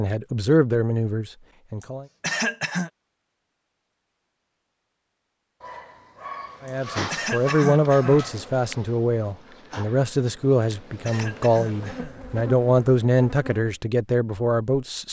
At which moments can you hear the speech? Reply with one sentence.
You can hear the speech from 0.0 to 2.0 s and from 6.6 to 15.0 s.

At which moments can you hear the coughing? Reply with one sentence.
The coughing can be heard from 1.8 to 2.9 s, from 6.7 to 8.3 s and from 10.6 to 12.2 s.